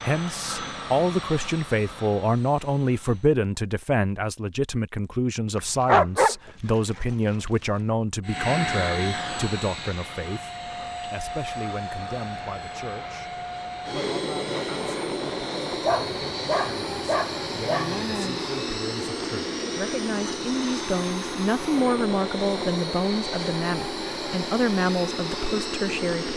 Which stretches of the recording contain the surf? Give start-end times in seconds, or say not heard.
not heard.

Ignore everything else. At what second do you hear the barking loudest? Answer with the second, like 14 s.
6 s.